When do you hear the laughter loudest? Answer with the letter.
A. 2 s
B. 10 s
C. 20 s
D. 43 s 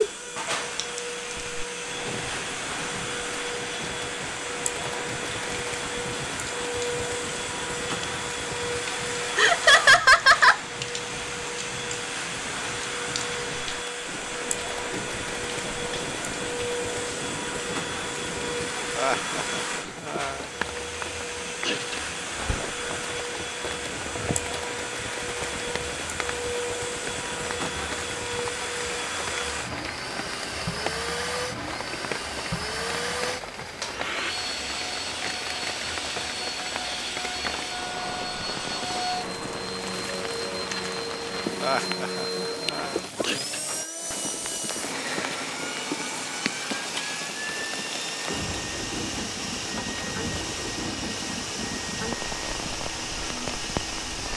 B.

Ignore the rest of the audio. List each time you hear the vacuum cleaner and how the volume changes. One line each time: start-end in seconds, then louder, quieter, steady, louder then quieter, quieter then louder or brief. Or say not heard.
0.0-54.3 steady.